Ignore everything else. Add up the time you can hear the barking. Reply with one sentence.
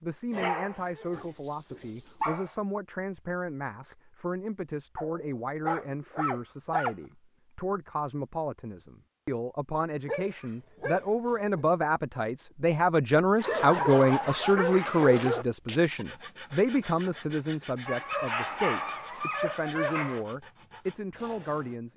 The barking can be heard for 10 seconds in total.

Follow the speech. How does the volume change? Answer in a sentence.
The loudness of the speech goes up, then down.